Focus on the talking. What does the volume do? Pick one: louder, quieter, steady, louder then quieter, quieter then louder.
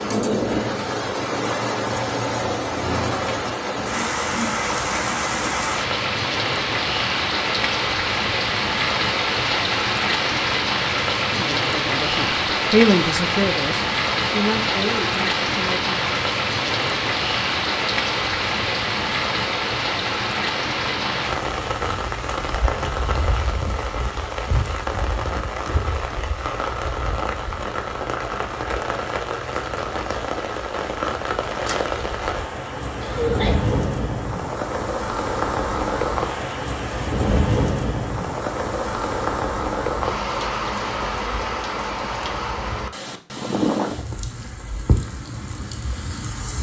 louder then quieter.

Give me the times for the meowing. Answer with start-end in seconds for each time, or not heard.
not heard.